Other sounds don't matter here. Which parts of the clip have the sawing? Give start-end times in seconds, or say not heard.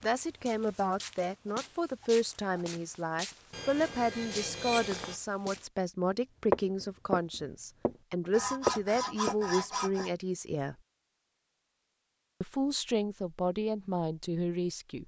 3.5-5.2, 8.3-10.1.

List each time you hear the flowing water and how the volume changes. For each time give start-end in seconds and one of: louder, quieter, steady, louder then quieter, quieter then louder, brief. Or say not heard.
not heard.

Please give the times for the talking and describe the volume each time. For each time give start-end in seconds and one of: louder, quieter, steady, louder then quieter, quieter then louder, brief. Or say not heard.
0.0-10.8 steady
12.4-15.0 brief.